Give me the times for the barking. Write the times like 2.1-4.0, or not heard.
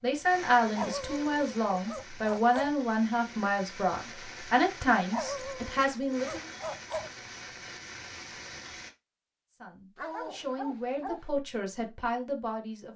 0.8-2.8, 5.1-7.1, 9.9-11.3.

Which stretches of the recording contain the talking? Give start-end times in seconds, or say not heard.
0.0-6.5, 9.6-12.9.